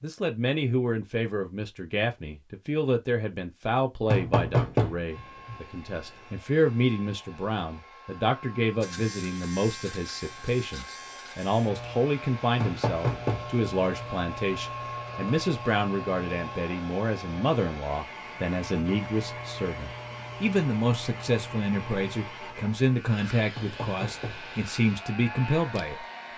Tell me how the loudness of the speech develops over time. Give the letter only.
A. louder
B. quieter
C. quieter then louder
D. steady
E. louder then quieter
D.